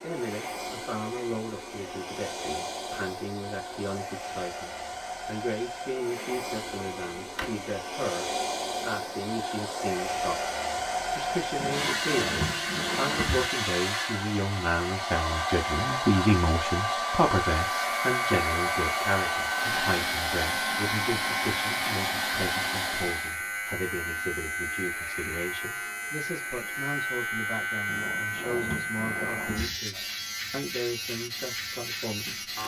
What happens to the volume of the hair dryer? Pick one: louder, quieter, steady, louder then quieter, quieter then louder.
louder.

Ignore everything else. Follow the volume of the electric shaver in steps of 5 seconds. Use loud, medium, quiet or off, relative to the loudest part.
off, off, off, loud, loud, loud, loud.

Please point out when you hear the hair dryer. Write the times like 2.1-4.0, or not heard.
0.0-23.4.